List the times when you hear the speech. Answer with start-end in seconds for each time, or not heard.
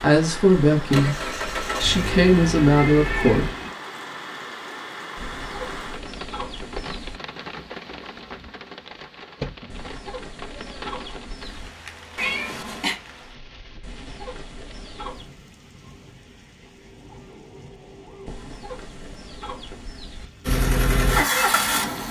0.0-3.5.